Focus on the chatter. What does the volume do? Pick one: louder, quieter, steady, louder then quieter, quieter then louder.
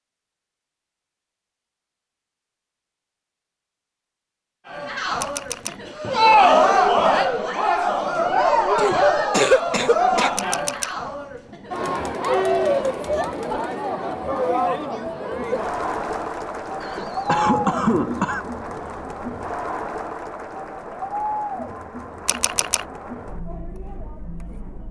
quieter.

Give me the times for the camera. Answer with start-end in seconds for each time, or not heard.
5.2-5.8, 10.3-10.9, 22.2-22.9.